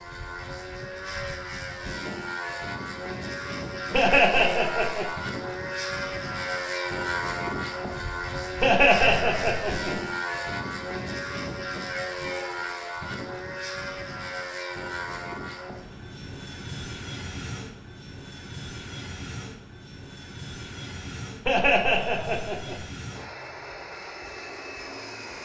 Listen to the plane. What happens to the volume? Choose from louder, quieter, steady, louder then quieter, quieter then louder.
quieter.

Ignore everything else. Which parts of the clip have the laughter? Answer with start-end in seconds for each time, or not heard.
3.9-5.1, 8.6-9.9, 21.4-22.8.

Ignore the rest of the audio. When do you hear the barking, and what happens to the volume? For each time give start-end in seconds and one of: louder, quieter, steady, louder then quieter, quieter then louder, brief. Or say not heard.
not heard.